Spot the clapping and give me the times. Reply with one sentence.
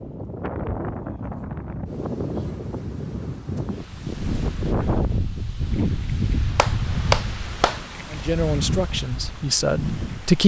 The clapping can be heard from 6.5 to 7.8 s.